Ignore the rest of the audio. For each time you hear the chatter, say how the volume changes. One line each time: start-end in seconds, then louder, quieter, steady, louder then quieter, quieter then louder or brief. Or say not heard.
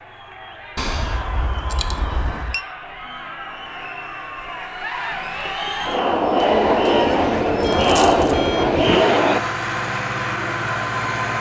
0.0-9.4 louder.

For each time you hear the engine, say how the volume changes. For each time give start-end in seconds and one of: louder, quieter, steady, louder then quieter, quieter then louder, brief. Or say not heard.
6.0-11.3 louder.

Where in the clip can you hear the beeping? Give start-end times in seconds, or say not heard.
0.8-2.6, 7.6-8.8.